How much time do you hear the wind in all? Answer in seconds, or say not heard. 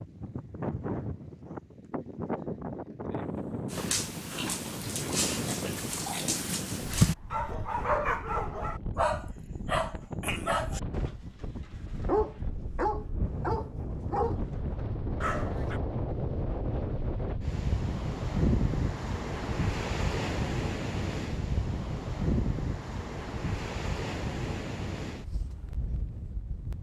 27 s.